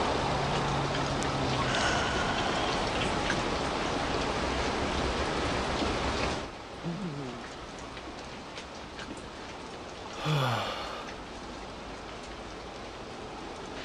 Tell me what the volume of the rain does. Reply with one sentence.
The volume of the rain goes down.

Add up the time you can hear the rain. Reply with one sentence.
The rain can be heard for 14 seconds in total.